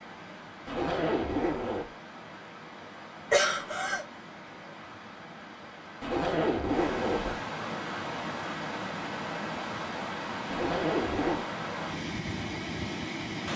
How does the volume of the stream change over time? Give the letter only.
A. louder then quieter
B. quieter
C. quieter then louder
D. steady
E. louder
E.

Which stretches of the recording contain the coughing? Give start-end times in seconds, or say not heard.
3.3-4.0.